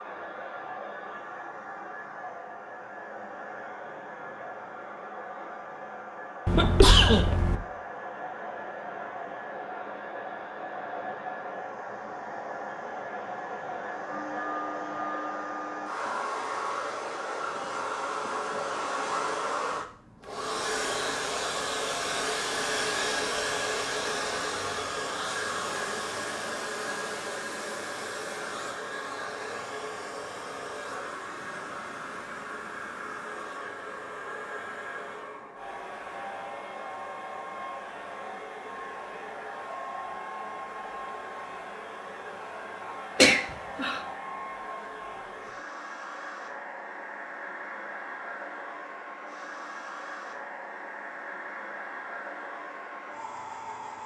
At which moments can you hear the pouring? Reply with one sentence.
You can't hear the pouring here.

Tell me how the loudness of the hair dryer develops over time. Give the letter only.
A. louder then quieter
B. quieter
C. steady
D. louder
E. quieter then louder
A.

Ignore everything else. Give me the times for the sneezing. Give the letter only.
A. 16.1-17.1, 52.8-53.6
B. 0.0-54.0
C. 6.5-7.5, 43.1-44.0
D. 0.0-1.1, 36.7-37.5
C.